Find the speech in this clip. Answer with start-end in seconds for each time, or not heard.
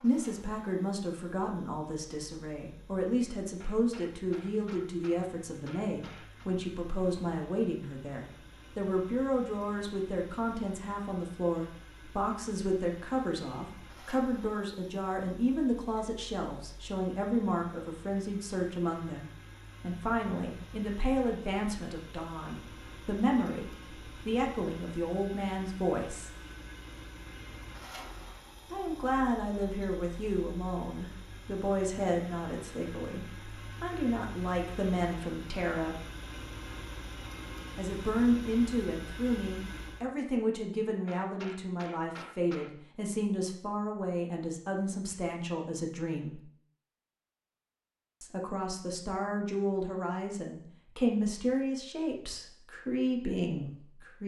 0.0-26.3, 28.7-36.0, 37.8-46.4, 48.2-54.2.